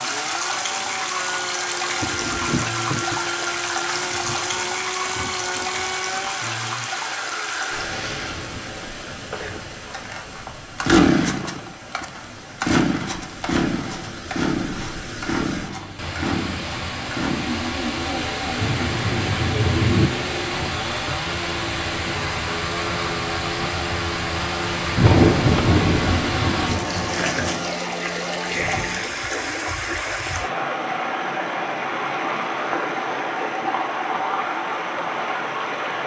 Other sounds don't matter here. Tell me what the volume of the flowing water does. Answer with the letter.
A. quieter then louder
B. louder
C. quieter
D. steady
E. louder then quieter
A.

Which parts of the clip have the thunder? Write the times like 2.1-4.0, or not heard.
2.0-3.2, 4.0-5.8, 18.6-20.1, 24.8-27.7.